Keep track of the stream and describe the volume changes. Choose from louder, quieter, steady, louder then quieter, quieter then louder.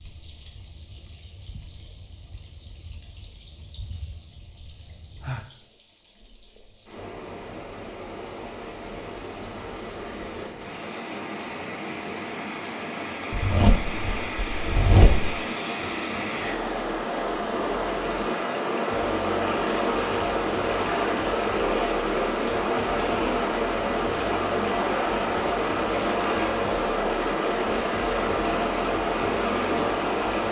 louder.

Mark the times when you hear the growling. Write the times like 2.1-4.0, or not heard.
not heard.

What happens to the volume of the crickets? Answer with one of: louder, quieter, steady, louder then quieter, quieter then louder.
louder.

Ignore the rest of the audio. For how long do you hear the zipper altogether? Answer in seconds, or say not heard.
2 s.